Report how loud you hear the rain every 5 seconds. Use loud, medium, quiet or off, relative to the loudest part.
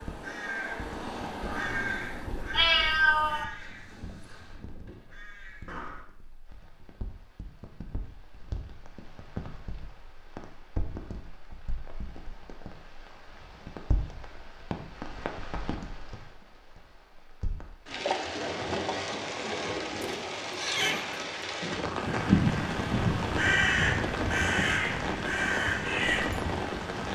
quiet, quiet, medium, loud, loud, loud.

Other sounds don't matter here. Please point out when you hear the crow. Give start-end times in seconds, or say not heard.
0.0-6.0, 21.9-27.1.